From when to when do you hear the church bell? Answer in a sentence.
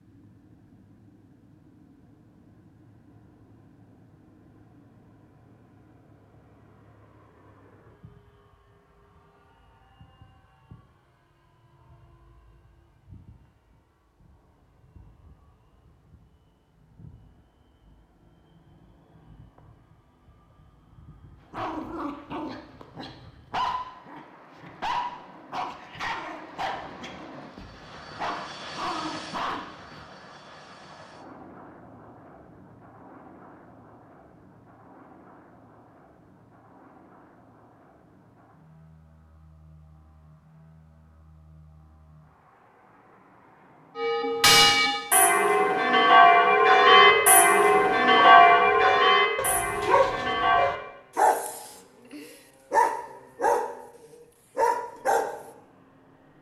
You can hear the church bell from 44.0 to 50.7 s.